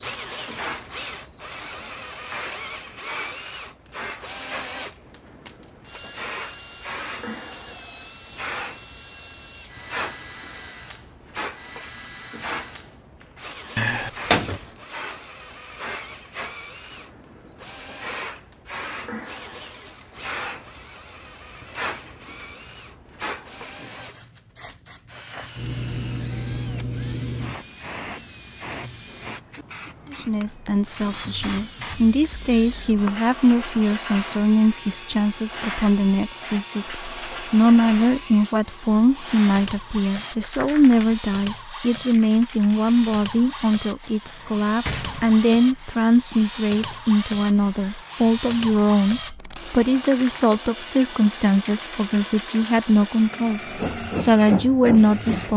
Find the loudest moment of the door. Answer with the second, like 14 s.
14 s.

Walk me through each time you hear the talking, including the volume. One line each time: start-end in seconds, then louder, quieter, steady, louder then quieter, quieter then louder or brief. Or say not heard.
30.1-55.5 steady.